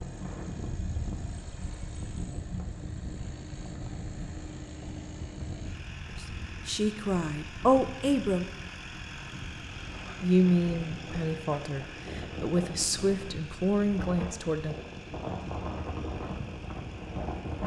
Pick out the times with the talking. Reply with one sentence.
The talking can be heard from 6.2 to 8.4 s and from 10.2 to 14.8 s.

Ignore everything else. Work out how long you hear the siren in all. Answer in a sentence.
The siren can't be heard in this clip.